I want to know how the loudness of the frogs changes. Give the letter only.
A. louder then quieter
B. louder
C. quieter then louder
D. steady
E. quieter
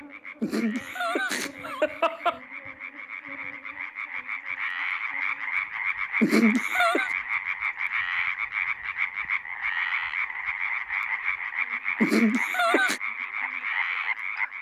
B.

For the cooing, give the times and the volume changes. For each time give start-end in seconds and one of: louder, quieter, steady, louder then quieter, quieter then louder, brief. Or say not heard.
not heard.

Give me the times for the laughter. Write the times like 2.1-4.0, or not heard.
0.4-2.4, 6.2-7.1, 12.0-13.0.